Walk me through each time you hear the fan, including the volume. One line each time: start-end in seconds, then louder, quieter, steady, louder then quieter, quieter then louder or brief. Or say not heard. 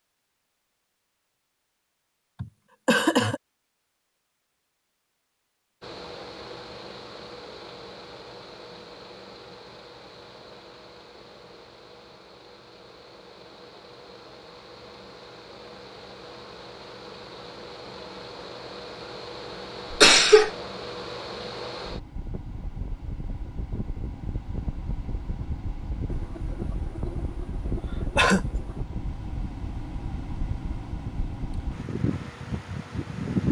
5.8-33.4 louder.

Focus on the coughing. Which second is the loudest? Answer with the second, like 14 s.
20 s.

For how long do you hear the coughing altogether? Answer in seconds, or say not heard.
4 s.